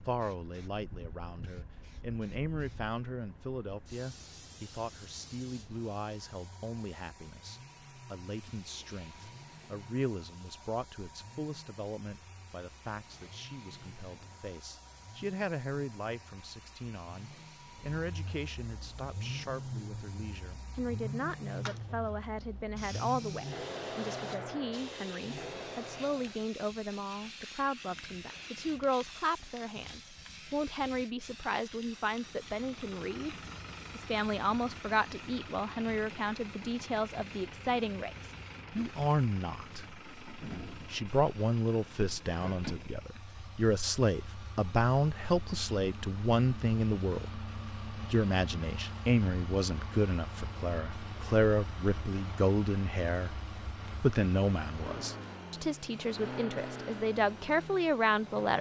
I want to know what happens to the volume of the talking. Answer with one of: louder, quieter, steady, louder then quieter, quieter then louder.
louder.